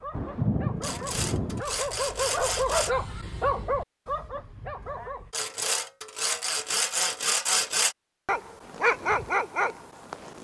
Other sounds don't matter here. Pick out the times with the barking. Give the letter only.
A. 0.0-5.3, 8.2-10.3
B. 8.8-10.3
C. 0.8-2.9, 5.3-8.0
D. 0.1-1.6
A.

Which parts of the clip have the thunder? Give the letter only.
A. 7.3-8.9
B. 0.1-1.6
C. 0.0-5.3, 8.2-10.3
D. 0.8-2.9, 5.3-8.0
B.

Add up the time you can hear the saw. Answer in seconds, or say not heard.
5 s.